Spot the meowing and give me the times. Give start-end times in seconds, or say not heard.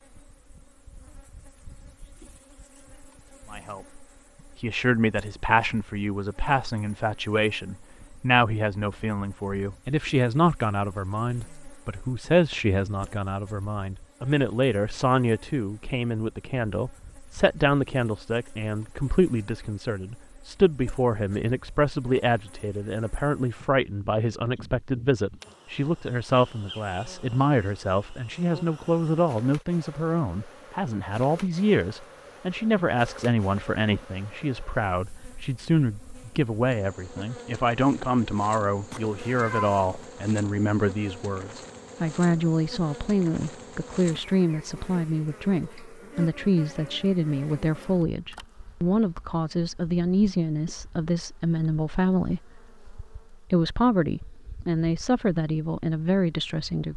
38.9-40.0.